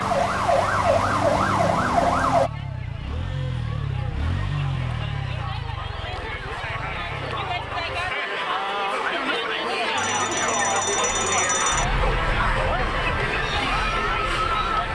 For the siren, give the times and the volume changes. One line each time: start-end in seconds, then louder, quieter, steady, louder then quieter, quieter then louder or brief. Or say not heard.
0.0-2.5 brief
9.9-14.9 quieter.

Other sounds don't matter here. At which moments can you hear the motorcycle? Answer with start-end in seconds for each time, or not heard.
0.0-8.2.